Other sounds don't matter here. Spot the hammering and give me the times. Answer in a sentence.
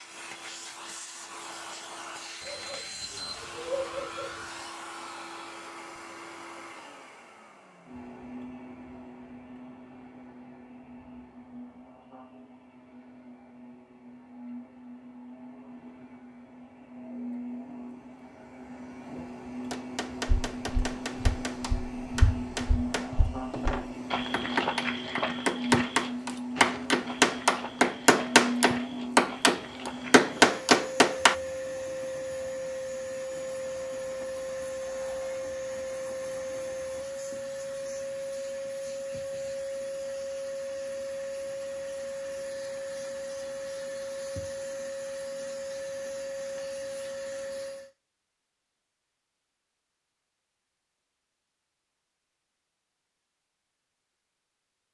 The hammering can be heard from 19.7 to 31.4 s.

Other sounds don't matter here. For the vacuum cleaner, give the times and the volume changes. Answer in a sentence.
The vacuum cleaner can be heard from 0.0 to 47.9 s, getting louder.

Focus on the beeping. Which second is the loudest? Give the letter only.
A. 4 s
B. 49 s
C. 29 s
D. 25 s
A.